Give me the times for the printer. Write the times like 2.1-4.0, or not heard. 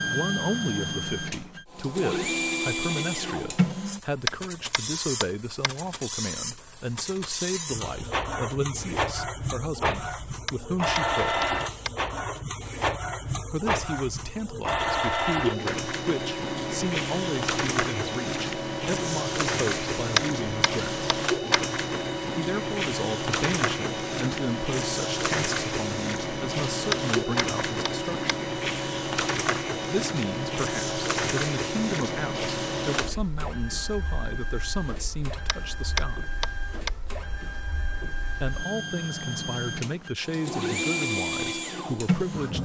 0.0-42.5.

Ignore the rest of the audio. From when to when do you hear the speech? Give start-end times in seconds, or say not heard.
0.1-11.5, 13.5-21.0, 22.4-28.3, 29.9-36.3, 38.2-42.5.